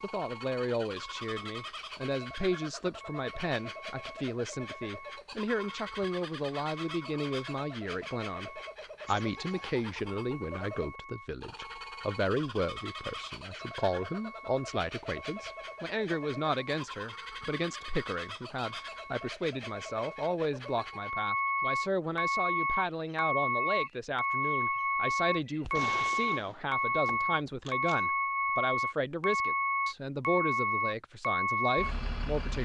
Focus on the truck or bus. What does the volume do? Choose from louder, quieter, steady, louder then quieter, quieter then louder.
louder.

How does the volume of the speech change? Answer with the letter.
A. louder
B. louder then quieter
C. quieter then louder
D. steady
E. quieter
D.